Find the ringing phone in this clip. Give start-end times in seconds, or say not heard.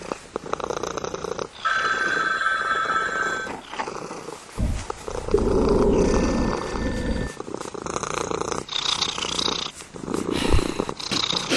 1.6-3.5, 6.0-7.4.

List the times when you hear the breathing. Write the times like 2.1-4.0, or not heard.
4.5-7.3, 10.3-11.5.